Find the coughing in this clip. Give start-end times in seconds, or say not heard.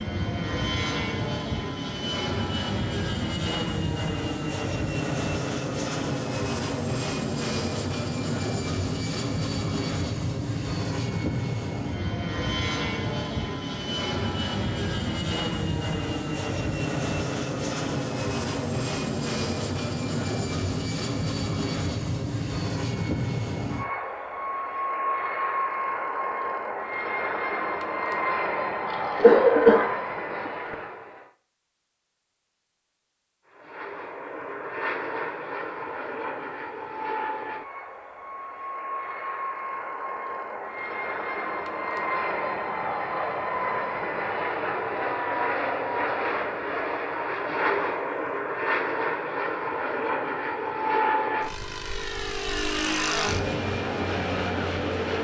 28.9-30.8.